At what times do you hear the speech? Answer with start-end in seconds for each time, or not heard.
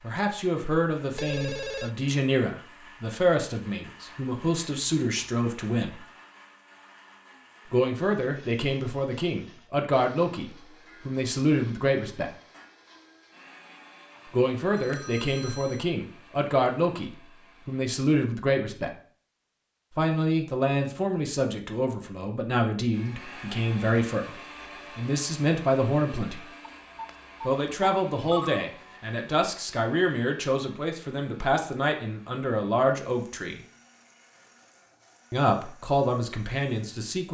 0.0-6.0, 7.7-12.3, 14.2-18.9, 19.9-26.5, 27.4-33.6, 35.3-37.2.